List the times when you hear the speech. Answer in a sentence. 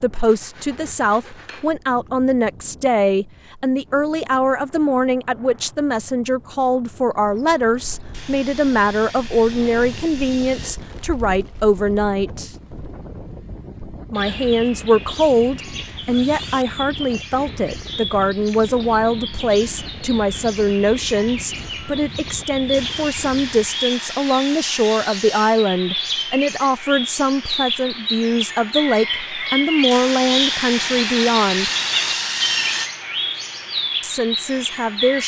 You can hear the speech from 0.0 to 12.5 s, from 14.1 to 31.7 s and from 34.0 to 35.2 s.